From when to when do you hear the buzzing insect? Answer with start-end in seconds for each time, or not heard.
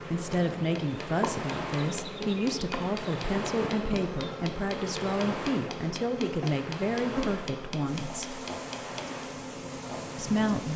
0.0-10.7.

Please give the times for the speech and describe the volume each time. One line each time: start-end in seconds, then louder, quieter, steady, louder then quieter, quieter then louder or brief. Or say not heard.
0.1-8.4 steady
10.2-10.7 brief.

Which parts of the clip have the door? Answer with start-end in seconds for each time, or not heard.
3.4-4.0.